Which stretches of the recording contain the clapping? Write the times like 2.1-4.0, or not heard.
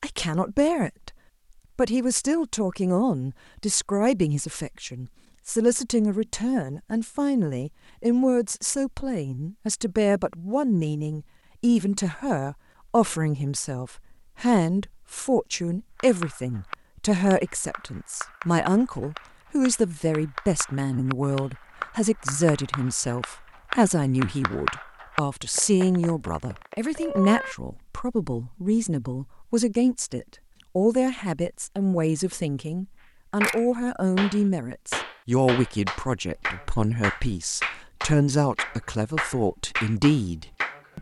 15.9-27.6, 33.4-40.8.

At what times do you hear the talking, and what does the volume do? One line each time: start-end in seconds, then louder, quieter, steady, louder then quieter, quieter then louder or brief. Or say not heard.
0.0-1.1 brief
1.8-40.9 steady.